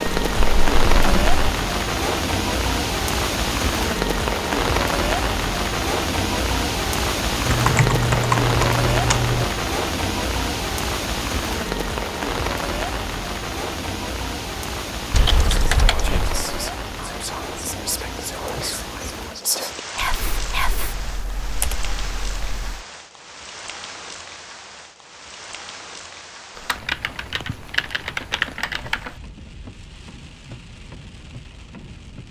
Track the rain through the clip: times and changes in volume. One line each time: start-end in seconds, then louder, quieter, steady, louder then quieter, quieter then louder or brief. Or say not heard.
0.0-32.2 quieter.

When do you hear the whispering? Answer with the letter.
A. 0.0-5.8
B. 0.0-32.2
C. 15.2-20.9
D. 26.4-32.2
C.